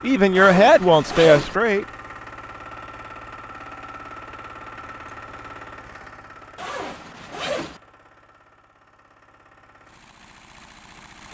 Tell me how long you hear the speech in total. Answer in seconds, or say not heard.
2 s.